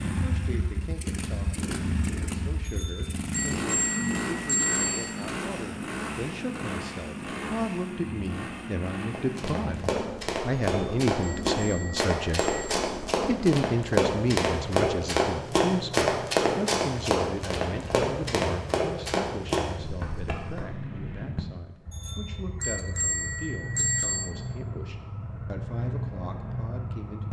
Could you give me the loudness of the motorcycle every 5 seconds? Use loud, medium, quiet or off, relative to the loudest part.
loud, loud, medium, medium, medium, loud.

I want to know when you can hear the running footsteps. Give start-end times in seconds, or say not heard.
9.1-20.7.